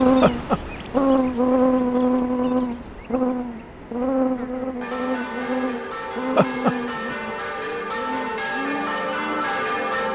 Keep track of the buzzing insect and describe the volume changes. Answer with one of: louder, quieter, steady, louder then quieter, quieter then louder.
quieter.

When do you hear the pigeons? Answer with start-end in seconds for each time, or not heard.
not heard.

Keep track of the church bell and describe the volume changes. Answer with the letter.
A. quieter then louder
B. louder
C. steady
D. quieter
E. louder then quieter
B.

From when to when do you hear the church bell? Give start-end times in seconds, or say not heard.
4.8-10.1.